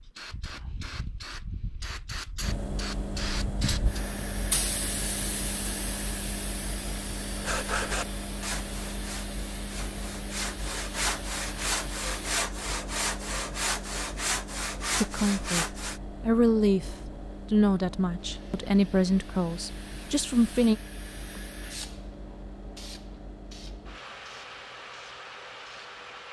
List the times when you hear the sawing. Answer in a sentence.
You can hear the sawing from 7.4 to 16.0 s.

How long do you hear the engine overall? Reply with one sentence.
The engine can be heard for 24 seconds in total.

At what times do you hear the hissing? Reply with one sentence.
You can hear the hissing from 0.0 to 12.4 s and from 18.2 to 26.2 s.